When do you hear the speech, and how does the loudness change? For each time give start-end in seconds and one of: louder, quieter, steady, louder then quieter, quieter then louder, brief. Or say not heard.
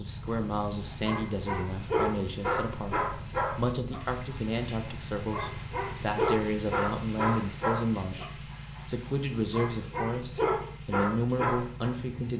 0.0-12.3 steady.